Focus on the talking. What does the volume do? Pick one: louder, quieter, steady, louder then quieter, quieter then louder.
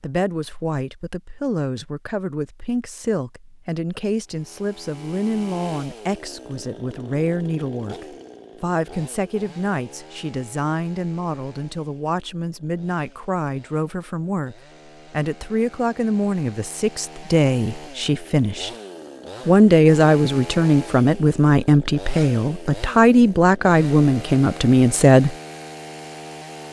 louder.